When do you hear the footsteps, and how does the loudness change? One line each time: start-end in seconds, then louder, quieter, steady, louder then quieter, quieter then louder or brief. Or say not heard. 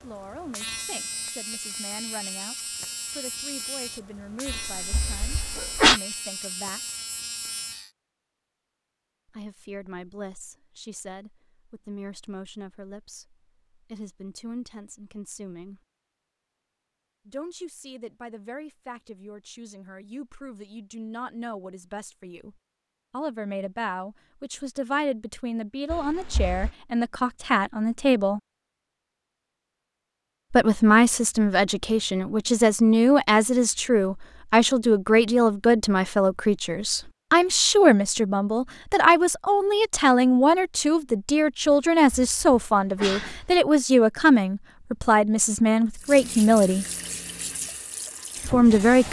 not heard.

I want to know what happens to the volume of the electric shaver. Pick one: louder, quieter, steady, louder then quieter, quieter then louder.
steady.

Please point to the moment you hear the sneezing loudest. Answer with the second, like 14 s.
6 s.